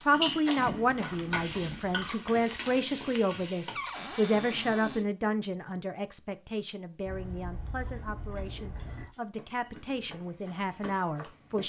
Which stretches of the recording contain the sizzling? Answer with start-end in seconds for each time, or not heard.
0.0-3.9.